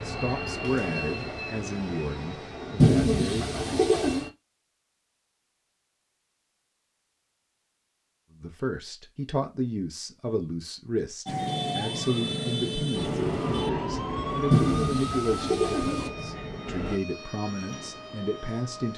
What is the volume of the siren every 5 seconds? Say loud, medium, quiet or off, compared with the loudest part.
off, off, loud, medium.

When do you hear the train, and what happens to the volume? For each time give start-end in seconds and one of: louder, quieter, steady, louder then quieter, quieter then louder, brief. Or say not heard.
0.0-4.3 quieter
12.9-17.0 quieter.